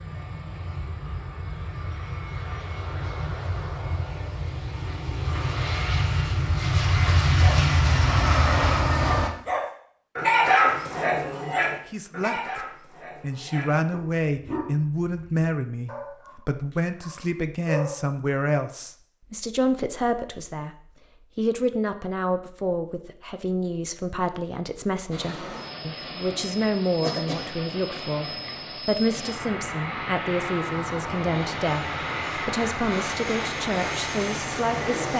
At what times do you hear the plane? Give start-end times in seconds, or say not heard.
0.0-9.3, 25.1-35.1.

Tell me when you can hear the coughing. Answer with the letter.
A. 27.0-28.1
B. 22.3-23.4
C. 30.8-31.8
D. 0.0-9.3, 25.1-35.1
A.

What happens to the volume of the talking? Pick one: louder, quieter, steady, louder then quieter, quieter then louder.
steady.